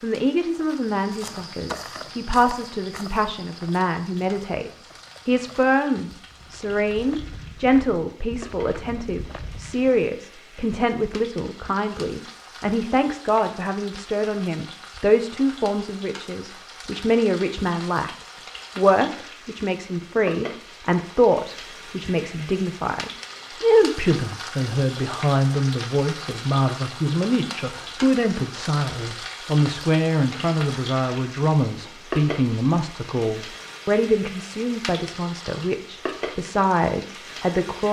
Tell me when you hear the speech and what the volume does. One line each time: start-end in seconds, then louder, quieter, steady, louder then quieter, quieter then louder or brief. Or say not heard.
0.0-37.8 steady.